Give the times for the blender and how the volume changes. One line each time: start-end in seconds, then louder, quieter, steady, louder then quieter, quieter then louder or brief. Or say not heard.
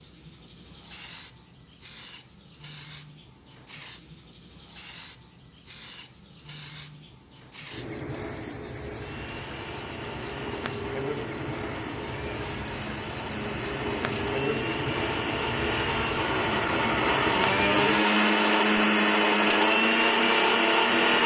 8.9-21.2 louder.